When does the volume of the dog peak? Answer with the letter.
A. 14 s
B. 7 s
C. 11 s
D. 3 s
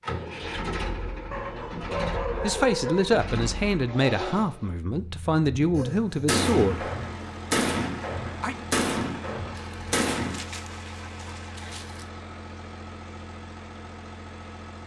D.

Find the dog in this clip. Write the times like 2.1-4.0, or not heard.
1.3-3.1, 9.6-12.1.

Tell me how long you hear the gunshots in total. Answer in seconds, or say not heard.
5 s.